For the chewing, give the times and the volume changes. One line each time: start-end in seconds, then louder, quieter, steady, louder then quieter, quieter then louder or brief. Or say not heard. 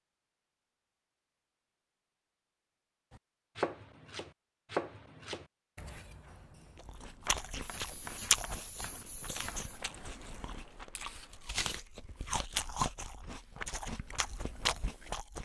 6.8-15.3 quieter then louder.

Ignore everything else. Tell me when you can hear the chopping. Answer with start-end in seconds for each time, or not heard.
3.1-9.7.